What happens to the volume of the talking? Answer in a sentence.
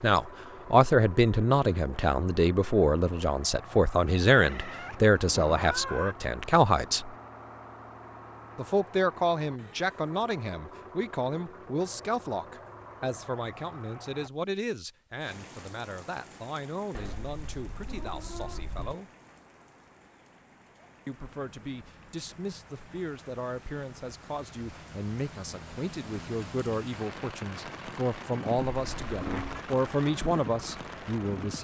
The loudness of the talking goes down, then up.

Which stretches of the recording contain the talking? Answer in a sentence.
You can hear the talking from 0.0 to 7.2 s, from 8.6 to 19.1 s and from 21.1 to 31.5 s.